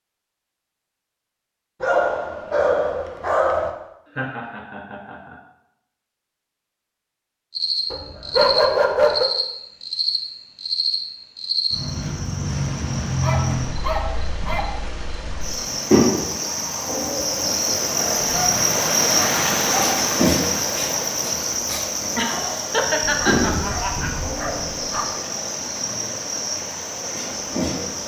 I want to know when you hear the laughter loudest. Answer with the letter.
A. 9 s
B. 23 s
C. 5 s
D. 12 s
B.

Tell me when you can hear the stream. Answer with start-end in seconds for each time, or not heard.
12.4-28.0.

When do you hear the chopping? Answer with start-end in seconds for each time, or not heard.
not heard.